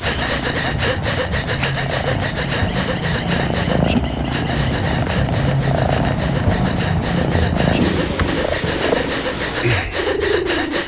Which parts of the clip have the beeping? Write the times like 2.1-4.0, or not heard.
not heard.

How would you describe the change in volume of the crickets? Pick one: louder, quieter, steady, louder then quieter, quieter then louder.
quieter then louder.